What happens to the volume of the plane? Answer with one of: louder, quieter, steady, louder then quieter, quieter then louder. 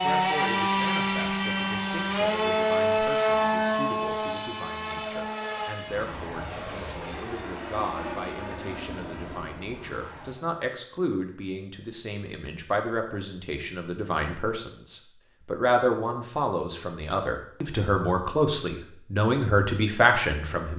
quieter.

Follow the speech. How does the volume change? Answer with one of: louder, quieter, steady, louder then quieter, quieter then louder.
louder.